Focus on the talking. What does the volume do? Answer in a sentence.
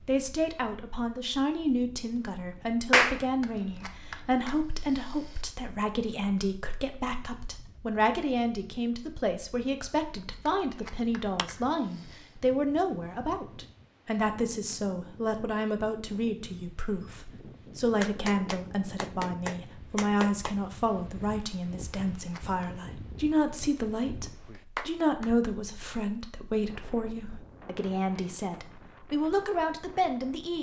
The loudness of the talking stays about the same.